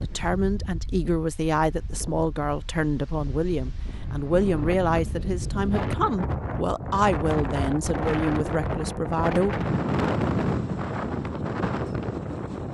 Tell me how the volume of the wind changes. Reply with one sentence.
The volume of the wind goes up.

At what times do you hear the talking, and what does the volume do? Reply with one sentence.
The talking can be heard from 0.0 to 9.6 s, at a steady volume.